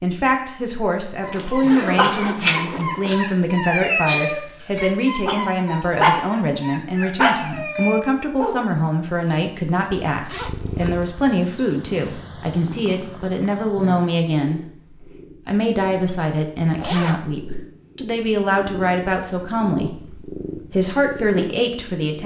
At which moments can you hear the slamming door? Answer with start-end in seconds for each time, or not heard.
not heard.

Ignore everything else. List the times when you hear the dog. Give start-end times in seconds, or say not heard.
1.2-8.6.